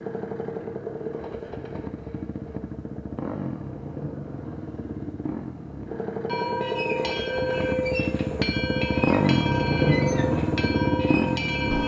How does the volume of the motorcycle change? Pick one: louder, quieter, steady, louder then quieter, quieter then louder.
louder.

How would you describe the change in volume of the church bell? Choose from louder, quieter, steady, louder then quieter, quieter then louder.
steady.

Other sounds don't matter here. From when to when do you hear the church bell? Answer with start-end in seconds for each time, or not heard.
6.2-11.8.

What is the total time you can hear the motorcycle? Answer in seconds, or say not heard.
12 s.